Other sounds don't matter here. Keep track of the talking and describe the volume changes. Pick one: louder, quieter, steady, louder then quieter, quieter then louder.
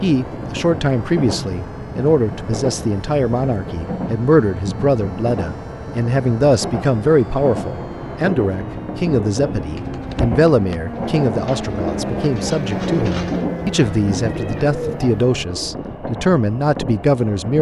steady.